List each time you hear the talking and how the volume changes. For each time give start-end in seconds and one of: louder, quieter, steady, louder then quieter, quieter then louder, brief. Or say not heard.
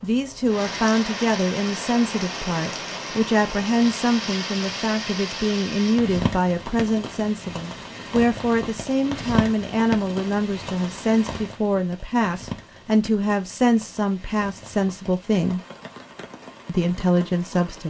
0.0-15.6 steady
16.6-17.8 brief.